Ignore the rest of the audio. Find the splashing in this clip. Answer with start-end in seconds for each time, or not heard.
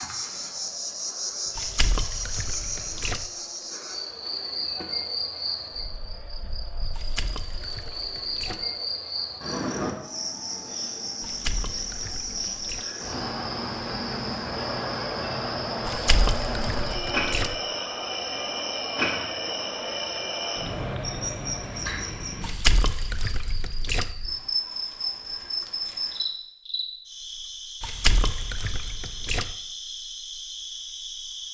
1.6-3.2, 6.9-8.7, 11.2-12.8, 15.8-17.6, 22.4-24.1, 27.8-29.6.